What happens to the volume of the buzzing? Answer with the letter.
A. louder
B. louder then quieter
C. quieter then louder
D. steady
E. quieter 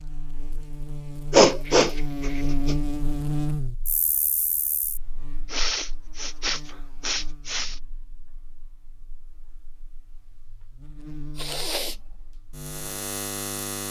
C.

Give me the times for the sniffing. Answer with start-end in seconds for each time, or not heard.
1.3-2.8, 5.5-7.8, 11.3-11.9.